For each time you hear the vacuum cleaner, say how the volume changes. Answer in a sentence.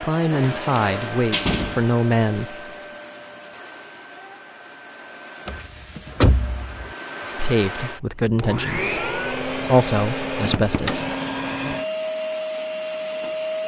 You can hear the vacuum cleaner from 0.0 to 13.6 s, getting quieter then louder.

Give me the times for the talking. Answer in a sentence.
The talking can be heard from 0.0 to 2.6 s and from 7.2 to 11.1 s.